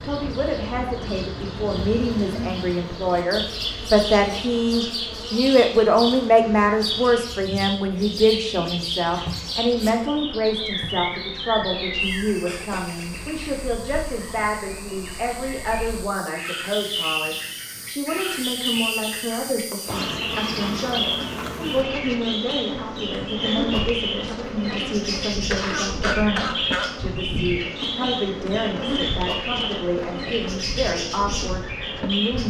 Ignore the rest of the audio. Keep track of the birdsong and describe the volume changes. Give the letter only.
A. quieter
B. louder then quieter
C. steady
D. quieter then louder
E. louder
C.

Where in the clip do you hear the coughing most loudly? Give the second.
26 s.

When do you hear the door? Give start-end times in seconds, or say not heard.
not heard.